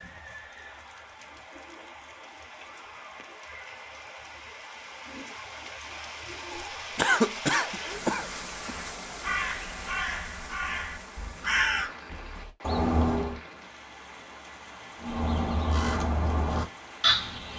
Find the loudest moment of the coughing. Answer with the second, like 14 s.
7 s.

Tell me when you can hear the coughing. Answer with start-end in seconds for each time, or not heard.
7.0-8.8.